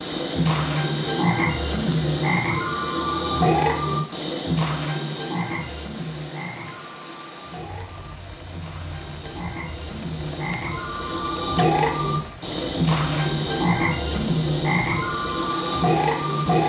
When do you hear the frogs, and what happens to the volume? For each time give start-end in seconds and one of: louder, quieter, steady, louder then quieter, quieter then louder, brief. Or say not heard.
0.0-16.6 quieter then louder.